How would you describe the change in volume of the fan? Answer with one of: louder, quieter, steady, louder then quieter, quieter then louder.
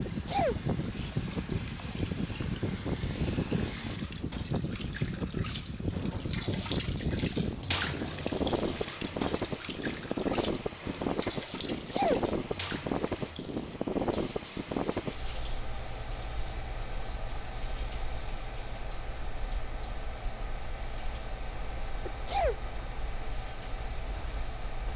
quieter.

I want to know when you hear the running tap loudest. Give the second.
8 s.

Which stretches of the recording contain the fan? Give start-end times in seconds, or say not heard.
0.0-24.9.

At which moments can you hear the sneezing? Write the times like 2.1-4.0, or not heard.
0.1-0.6, 11.7-12.2, 22.1-22.6.